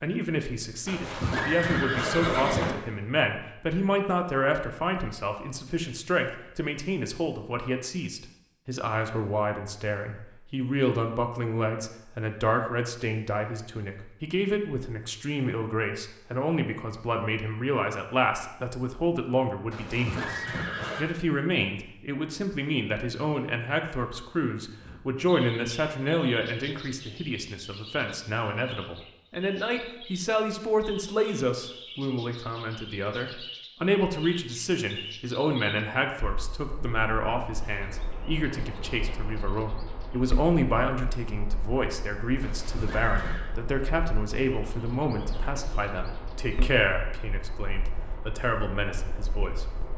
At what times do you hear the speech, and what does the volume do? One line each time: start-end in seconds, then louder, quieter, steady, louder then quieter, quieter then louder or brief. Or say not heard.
0.0-49.7 steady.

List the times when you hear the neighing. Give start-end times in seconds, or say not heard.
0.8-2.8, 19.7-21.1, 42.4-43.5.